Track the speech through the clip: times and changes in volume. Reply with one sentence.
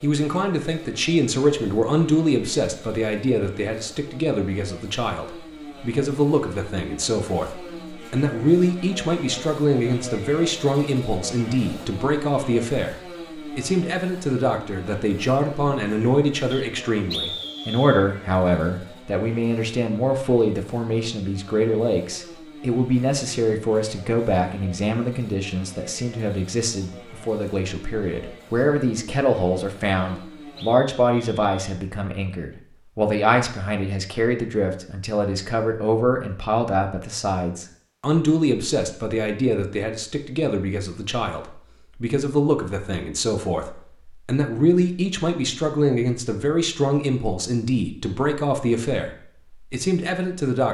The speech can be heard from 0.0 to 50.6 s, at a steady volume.